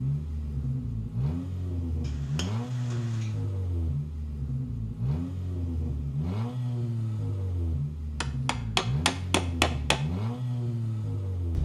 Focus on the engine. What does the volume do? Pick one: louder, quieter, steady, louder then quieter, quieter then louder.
steady.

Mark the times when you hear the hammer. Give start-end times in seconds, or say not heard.
2.0-3.4, 8.2-10.0.